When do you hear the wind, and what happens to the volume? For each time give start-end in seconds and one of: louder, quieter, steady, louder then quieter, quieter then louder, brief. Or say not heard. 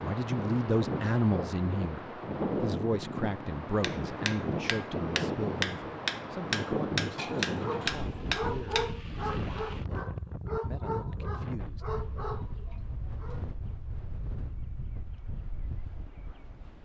0.0-16.7 quieter.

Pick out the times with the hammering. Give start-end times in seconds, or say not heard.
3.7-9.0.